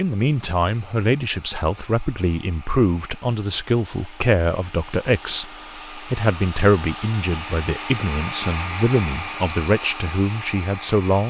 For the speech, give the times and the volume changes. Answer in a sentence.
You can hear the speech from 0.0 to 11.2 s, at a steady volume.